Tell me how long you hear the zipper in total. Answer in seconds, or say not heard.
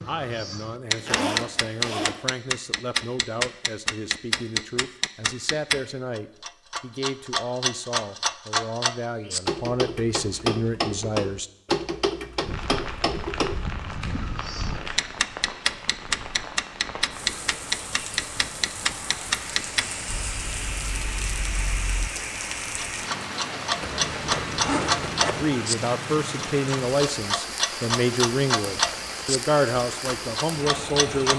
3 s.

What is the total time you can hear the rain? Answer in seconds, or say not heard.
19 s.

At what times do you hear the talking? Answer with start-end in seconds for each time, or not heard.
0.0-11.5, 25.3-31.3.